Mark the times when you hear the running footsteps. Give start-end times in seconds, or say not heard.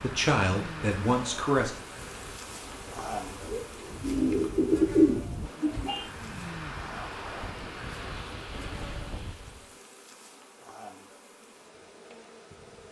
not heard.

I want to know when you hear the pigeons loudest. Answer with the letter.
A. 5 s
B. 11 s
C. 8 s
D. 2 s
A.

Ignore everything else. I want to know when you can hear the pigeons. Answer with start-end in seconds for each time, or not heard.
3.5-6.0.